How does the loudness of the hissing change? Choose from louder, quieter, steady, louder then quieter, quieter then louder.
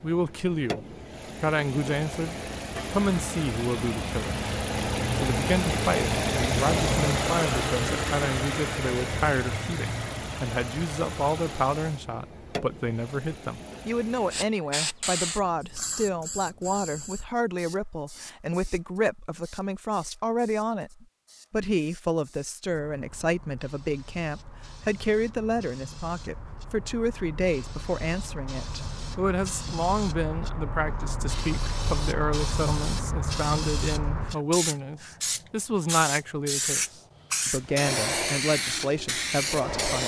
quieter then louder.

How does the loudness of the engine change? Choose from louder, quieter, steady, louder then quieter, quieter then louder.
louder then quieter.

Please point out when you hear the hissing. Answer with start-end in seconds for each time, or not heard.
14.3-40.0.